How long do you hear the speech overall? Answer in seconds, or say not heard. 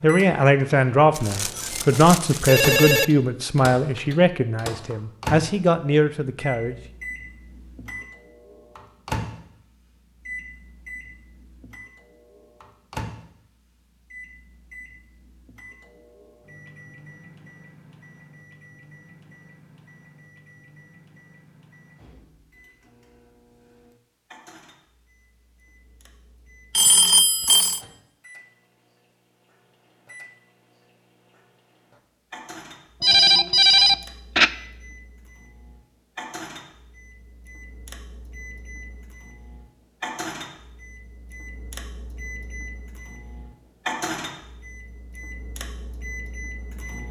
7 s.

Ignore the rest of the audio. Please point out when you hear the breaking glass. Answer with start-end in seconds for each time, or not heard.
not heard.